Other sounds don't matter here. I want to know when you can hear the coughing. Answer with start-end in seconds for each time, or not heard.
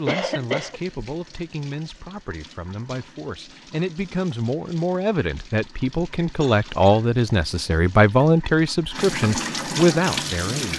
0.1-0.8, 6.4-7.1.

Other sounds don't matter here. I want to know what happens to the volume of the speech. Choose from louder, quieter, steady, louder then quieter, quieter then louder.
louder.